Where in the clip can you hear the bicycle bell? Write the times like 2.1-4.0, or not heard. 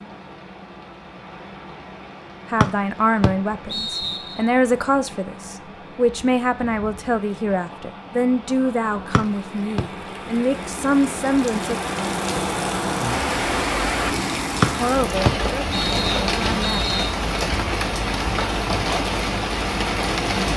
not heard.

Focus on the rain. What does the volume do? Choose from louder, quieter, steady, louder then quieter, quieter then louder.
louder.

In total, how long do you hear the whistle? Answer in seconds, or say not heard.
5 s.